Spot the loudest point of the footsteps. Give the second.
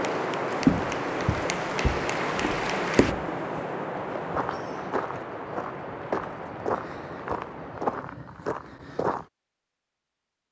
1 s.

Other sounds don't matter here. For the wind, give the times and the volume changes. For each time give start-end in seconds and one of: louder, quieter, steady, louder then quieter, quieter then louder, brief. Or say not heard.
0.0-8.1 quieter.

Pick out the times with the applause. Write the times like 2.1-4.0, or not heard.
0.0-3.1.